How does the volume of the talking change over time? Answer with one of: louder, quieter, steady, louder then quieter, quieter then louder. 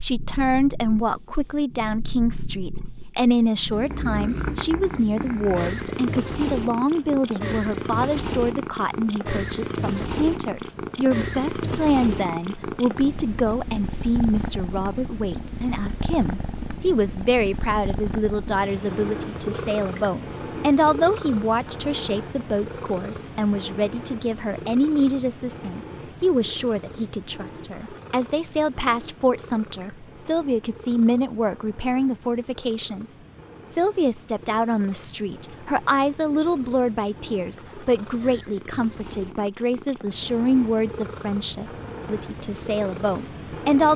steady.